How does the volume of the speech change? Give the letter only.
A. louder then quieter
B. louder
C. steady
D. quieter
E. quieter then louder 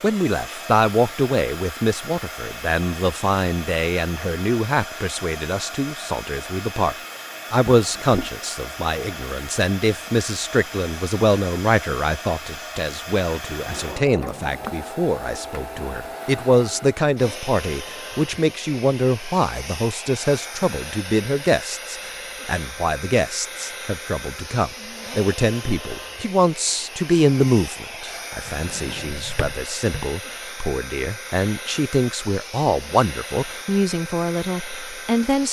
C.